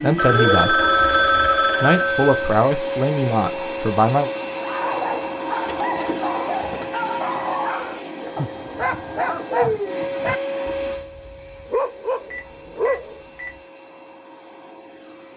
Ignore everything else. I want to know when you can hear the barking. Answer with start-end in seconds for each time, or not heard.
4.6-13.2.